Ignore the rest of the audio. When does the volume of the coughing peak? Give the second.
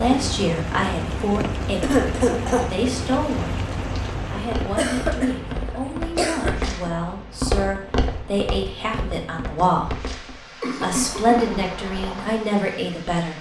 2 s.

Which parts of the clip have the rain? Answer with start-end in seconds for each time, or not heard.
0.0-13.3.